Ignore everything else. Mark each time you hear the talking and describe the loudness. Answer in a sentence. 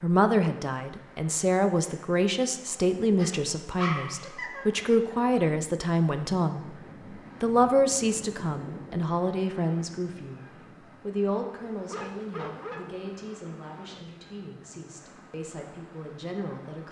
You can hear the talking from 0.0 to 6.7 s, at a steady volume; and from 7.4 to 16.8 s, getting quieter.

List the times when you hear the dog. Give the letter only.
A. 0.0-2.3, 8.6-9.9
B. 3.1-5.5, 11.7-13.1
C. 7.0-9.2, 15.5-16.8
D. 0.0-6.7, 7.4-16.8
B.